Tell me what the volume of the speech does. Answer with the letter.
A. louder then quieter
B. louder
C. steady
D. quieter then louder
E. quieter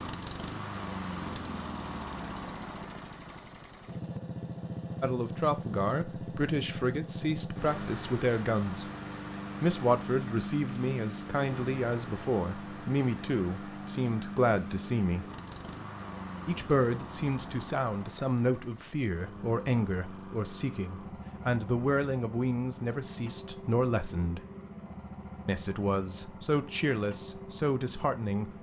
C.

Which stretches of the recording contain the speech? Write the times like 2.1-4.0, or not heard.
5.0-8.8, 9.6-15.2, 16.4-24.4, 25.4-28.5.